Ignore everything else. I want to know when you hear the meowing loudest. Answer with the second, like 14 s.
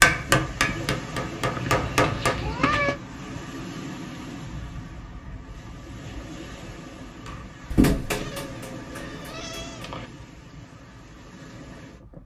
3 s.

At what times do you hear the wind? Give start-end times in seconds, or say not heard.
0.0-12.2.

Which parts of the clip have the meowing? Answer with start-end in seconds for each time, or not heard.
1.5-3.0, 8.1-10.1.